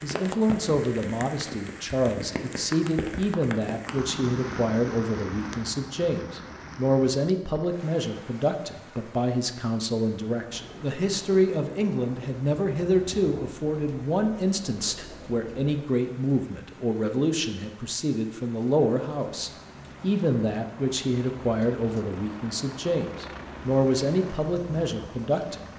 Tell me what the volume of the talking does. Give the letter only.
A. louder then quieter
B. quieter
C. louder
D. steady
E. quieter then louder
D.